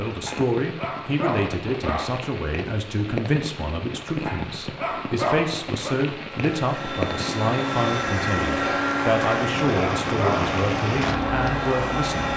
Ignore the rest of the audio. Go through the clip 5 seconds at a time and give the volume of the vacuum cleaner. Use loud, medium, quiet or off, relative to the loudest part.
off, loud, loud.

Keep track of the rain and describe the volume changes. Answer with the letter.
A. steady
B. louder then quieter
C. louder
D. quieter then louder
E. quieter
C.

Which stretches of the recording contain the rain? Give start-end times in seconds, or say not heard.
0.0-12.3.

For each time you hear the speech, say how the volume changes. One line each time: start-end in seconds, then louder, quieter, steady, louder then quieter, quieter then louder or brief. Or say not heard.
0.0-12.3 steady.